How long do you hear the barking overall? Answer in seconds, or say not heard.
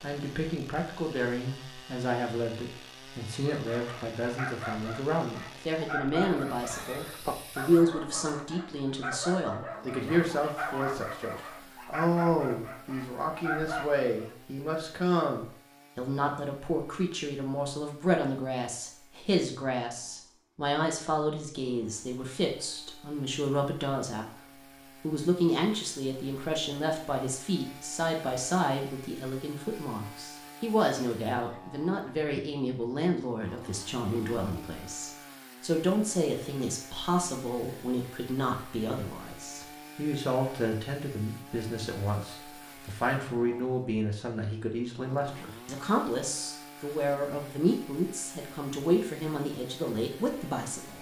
11 s.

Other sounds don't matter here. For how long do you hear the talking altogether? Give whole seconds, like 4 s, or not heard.
50 s.